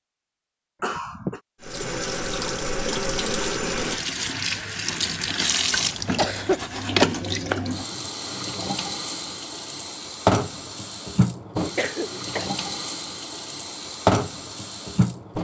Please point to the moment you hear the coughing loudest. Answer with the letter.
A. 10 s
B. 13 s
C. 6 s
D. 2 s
C.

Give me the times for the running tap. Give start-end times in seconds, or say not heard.
1.6-15.3.